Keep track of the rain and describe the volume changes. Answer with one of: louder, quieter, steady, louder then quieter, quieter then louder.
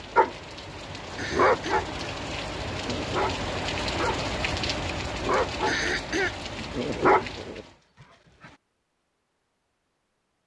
louder then quieter.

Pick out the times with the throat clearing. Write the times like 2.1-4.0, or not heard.
1.1-1.9, 5.7-6.5.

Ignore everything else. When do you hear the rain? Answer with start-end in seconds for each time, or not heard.
0.0-7.8.